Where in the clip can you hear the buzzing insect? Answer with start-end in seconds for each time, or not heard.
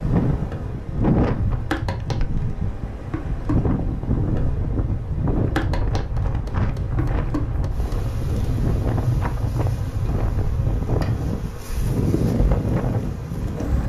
0.0-13.8.